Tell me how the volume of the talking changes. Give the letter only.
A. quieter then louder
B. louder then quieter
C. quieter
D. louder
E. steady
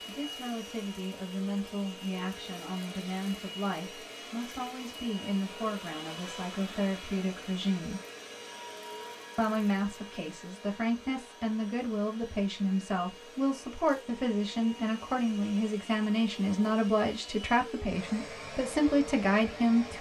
D.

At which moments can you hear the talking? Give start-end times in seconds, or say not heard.
0.1-8.0, 9.3-19.9.